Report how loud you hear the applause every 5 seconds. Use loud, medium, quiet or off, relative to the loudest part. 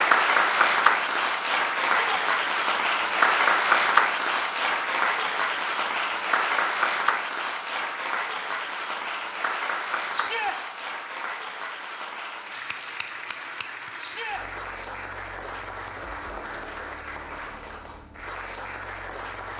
loud, medium, quiet, quiet.